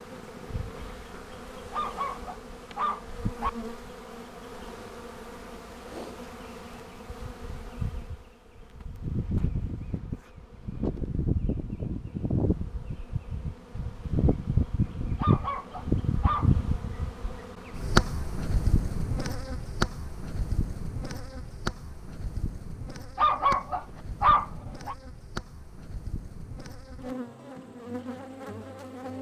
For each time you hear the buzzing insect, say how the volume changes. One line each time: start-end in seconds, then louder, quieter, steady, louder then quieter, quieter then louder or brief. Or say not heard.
0.0-29.1 louder then quieter.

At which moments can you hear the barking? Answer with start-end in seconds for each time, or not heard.
1.7-3.5, 15.2-16.5, 23.1-24.9.